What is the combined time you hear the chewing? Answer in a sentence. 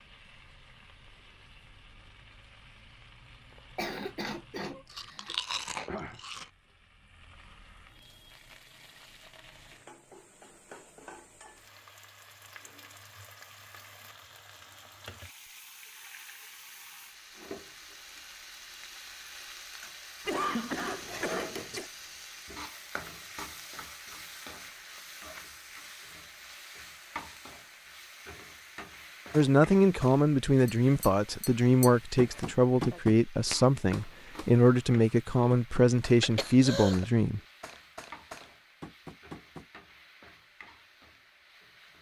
You can hear the chewing for 2 seconds altogether.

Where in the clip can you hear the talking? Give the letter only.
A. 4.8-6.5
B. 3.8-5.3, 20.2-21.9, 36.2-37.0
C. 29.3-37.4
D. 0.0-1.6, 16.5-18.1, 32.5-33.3
C.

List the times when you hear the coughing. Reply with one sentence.
The coughing can be heard from 3.8 to 5.3 s, from 20.2 to 21.9 s and from 36.2 to 37.0 s.